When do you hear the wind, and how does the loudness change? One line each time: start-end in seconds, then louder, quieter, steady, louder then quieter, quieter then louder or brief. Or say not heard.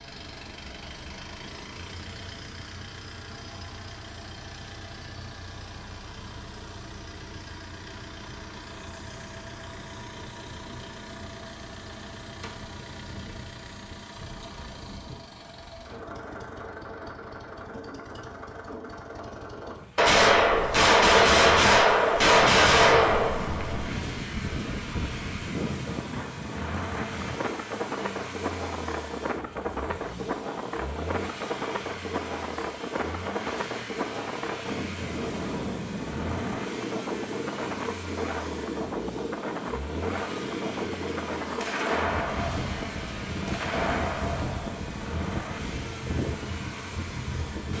22.3-47.7 steady.